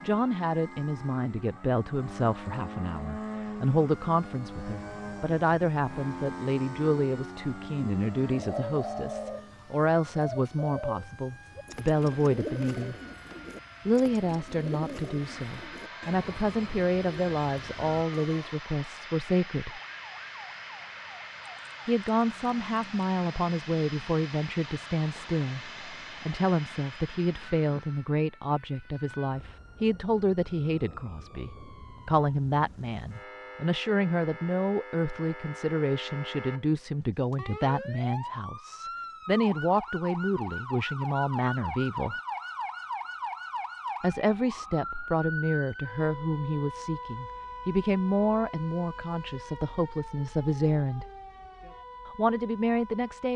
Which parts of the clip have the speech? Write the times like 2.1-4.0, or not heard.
0.0-12.9, 13.8-19.8, 21.9-42.1, 44.0-51.0, 52.0-53.3.